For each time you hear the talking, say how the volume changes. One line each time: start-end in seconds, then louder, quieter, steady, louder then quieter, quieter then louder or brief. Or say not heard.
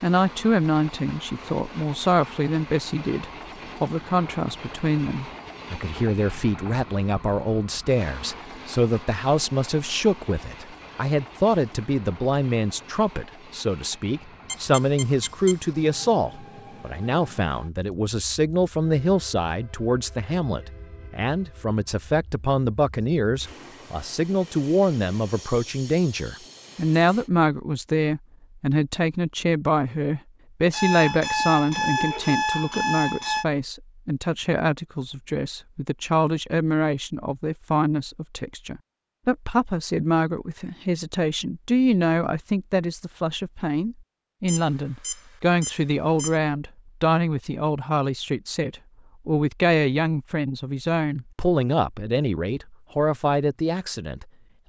0.0-54.2 steady.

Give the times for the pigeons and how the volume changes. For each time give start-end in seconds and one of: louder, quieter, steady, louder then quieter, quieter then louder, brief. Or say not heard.
not heard.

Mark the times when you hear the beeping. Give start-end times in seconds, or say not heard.
14.4-15.6, 30.7-33.5, 44.5-46.4.